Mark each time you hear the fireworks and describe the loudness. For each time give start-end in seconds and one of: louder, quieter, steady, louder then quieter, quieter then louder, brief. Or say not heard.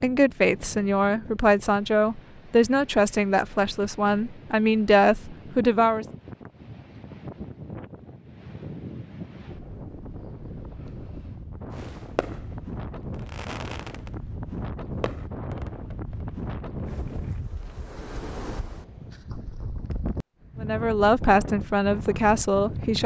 11.7-17.8 quieter.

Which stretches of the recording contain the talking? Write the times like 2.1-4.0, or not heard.
0.0-6.0, 20.6-23.0.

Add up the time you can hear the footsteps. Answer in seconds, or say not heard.
not heard.